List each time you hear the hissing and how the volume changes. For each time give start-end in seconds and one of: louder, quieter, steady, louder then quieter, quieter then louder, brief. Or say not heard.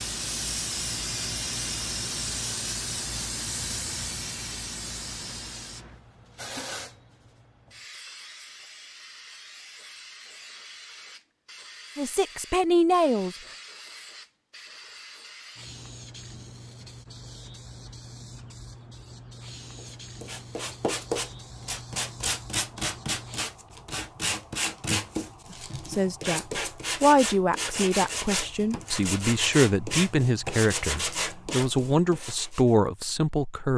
0.0-23.4 quieter.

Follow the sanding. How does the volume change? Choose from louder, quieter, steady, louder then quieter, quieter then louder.
steady.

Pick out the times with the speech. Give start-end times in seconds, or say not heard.
11.9-13.3, 25.9-33.7.